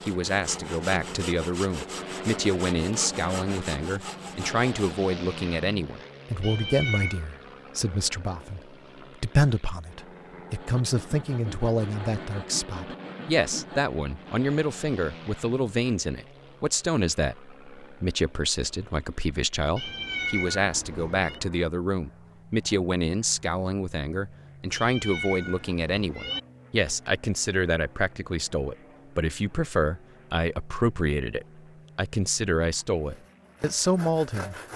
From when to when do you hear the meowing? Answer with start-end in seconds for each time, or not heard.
6.4-7.2, 19.8-21.4, 24.7-26.4.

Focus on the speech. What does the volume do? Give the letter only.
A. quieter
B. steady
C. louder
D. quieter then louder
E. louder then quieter
B.